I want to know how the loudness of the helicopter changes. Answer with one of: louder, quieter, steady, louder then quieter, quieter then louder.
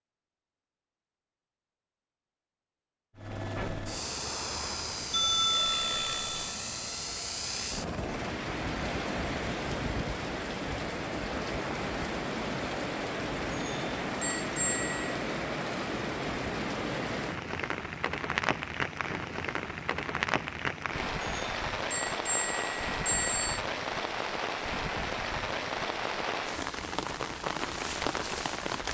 steady.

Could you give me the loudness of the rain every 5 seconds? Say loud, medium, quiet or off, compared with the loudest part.
off, loud, loud, loud, loud, loud.